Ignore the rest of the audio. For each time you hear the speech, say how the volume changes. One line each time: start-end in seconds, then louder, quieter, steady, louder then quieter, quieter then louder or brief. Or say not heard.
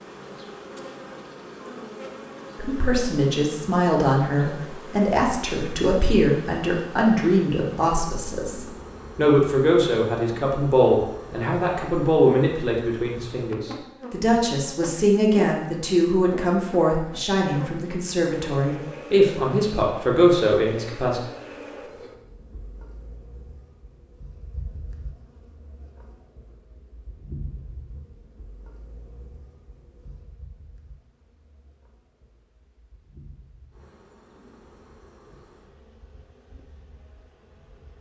2.5-21.2 steady.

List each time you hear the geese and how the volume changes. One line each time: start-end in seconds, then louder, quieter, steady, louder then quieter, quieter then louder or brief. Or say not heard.
not heard.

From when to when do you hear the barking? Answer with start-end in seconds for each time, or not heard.
not heard.